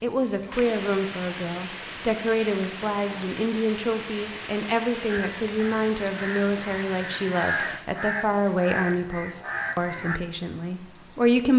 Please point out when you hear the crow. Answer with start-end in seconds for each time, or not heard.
5.0-10.2.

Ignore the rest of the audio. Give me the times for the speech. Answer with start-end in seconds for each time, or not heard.
0.0-11.5.